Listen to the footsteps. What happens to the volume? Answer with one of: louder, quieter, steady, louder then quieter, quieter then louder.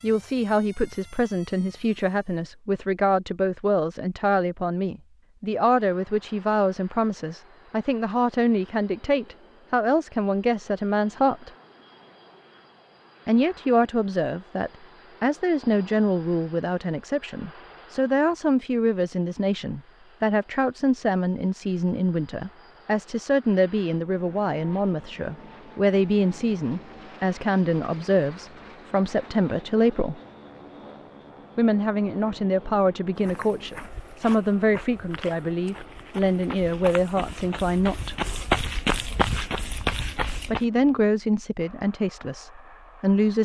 louder.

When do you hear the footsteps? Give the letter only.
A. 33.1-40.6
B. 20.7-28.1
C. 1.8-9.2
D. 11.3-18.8
A.